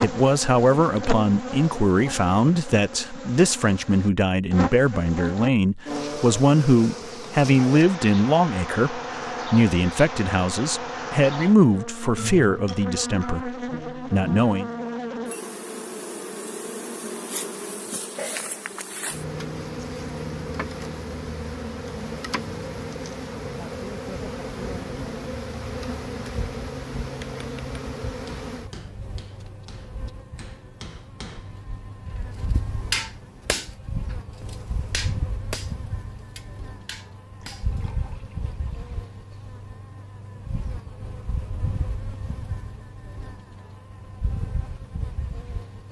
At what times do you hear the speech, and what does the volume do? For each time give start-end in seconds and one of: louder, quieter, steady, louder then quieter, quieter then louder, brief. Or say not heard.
0.0-14.7 steady.